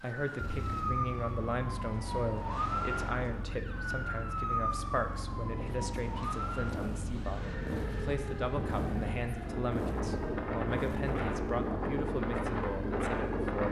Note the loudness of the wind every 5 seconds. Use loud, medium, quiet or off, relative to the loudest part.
off, medium, loud.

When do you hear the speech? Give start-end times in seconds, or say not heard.
0.0-13.4.